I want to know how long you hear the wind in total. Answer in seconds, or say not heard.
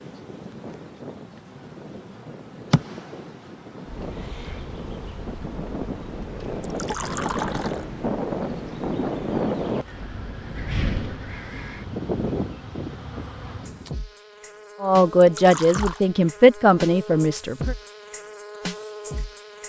14 s.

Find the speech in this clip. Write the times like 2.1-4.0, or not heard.
14.8-17.8.